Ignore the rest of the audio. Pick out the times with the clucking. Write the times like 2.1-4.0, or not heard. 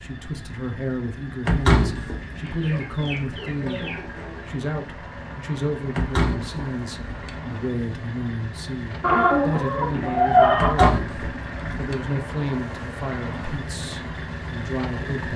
2.4-4.5, 9.0-10.9.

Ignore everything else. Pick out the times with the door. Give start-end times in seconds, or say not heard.
1.4-2.5, 6.0-7.4, 10.6-12.0.